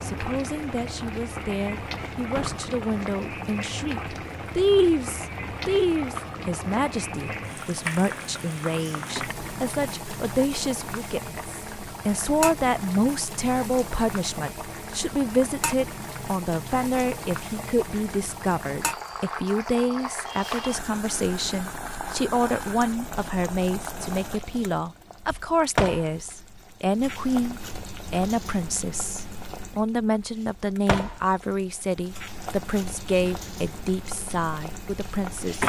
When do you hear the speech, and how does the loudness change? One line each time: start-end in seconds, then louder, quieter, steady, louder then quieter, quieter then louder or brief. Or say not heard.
0.0-35.6 steady.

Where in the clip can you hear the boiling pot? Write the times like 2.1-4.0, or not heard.
0.0-35.6.